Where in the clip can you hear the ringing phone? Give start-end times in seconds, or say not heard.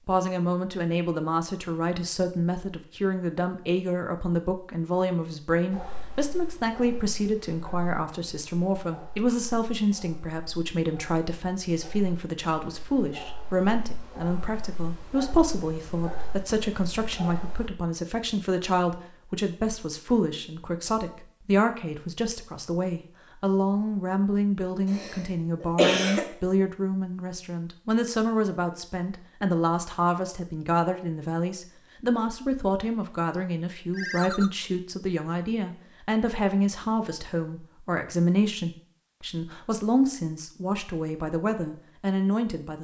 33.9-34.5.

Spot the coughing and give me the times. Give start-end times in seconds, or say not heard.
24.9-26.2.